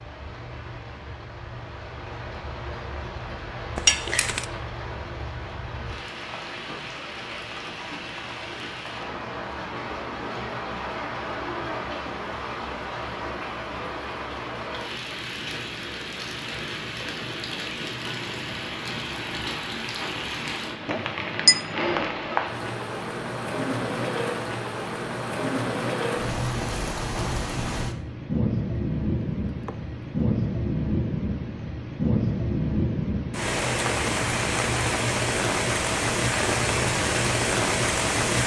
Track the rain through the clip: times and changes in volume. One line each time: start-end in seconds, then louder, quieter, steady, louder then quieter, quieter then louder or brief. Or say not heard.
0.0-38.4 louder.